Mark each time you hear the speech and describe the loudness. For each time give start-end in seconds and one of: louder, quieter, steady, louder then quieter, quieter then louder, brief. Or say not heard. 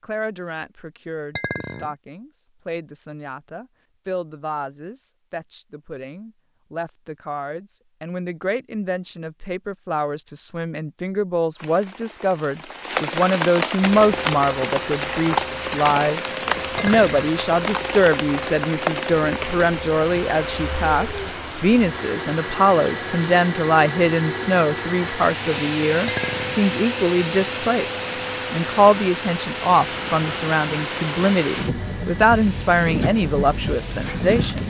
0.0-34.6 louder.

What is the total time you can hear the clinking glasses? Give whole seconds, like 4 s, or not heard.
2 s.